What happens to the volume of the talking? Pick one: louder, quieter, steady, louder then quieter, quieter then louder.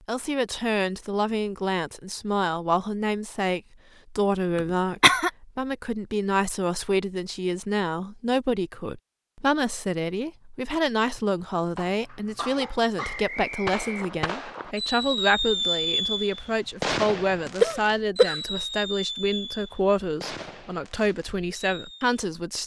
steady.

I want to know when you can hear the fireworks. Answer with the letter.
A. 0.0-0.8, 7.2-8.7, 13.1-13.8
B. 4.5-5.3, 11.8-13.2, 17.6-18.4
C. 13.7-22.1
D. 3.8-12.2
C.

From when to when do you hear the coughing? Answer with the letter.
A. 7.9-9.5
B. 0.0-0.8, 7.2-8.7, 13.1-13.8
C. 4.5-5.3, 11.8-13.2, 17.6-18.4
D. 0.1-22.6
C.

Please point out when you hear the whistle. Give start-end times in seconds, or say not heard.
12.9-14.6.